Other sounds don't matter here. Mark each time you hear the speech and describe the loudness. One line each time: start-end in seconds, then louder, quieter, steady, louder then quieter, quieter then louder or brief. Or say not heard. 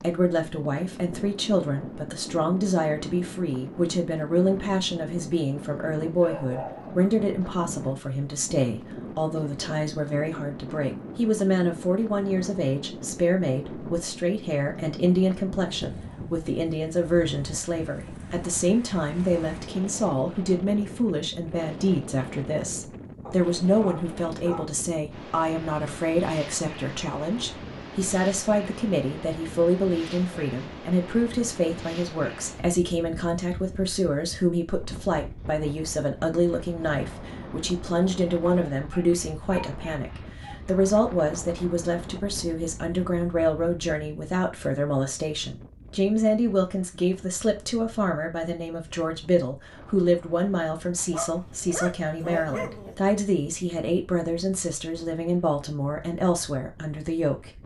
0.0-57.6 steady.